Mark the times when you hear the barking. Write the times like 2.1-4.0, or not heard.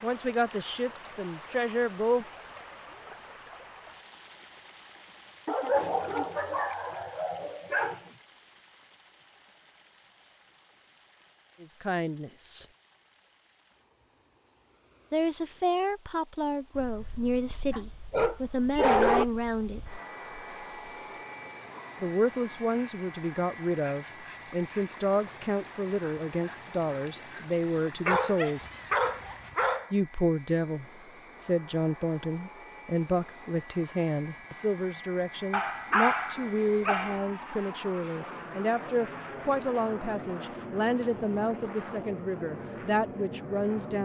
5.5-8.0, 17.7-19.2, 28.1-29.9, 35.5-37.3.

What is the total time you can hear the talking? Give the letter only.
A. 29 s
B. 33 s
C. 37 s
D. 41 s
A.